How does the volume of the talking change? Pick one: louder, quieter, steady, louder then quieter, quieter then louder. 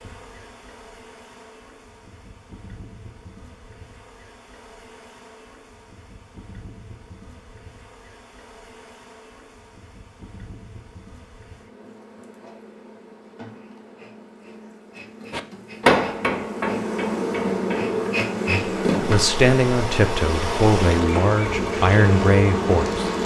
steady.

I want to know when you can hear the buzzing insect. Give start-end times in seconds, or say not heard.
0.0-23.2.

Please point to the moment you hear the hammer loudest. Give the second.
16 s.